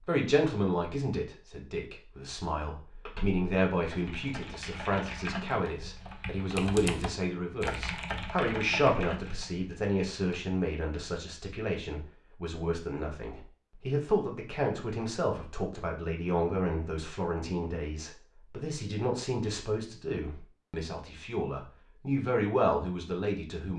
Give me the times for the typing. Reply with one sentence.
You can hear the typing from 2.9 to 10.4 s.